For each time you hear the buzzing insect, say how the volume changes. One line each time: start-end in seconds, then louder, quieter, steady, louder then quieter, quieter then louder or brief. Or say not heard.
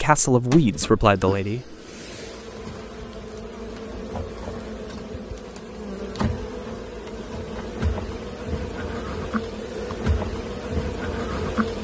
0.0-11.8 louder.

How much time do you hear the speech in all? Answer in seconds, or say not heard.
2 s.